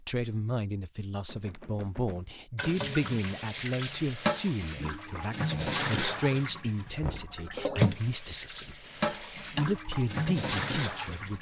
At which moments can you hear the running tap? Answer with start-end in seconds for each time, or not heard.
2.5-11.3.